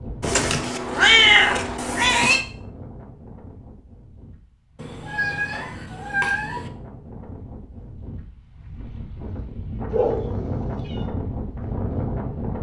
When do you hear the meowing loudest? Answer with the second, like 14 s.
1 s.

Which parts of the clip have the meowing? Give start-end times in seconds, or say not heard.
0.2-2.5, 4.8-6.7, 9.9-11.0.